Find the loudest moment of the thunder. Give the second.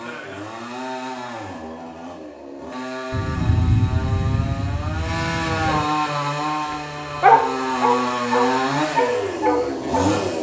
4 s.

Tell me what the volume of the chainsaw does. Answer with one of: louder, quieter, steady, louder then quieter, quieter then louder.
louder.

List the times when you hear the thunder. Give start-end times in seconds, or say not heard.
3.1-5.8.